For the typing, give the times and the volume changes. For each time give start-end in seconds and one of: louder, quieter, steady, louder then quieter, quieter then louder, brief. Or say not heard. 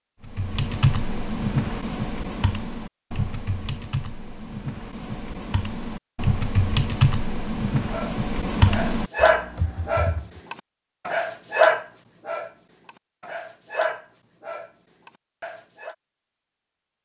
0.2-10.3 quieter then louder.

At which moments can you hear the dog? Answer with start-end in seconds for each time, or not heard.
7.9-15.9.